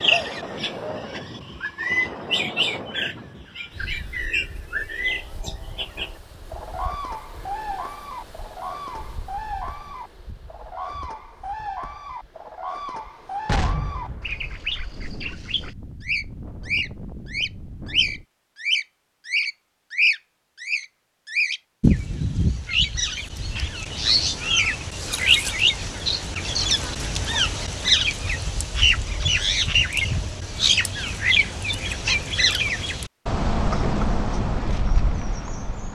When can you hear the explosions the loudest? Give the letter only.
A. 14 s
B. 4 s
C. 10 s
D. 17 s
A.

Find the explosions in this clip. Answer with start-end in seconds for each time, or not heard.
13.4-15.0.